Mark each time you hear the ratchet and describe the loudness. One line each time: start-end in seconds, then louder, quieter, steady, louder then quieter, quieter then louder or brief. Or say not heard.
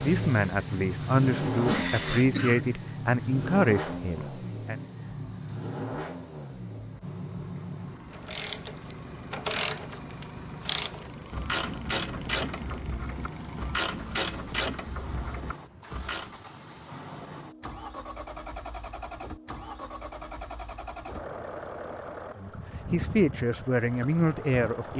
8.1-16.4 steady.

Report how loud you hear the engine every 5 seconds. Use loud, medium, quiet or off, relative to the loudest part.
loud, medium, medium, medium, medium.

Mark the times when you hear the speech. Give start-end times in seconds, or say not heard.
0.0-4.8, 22.4-24.9.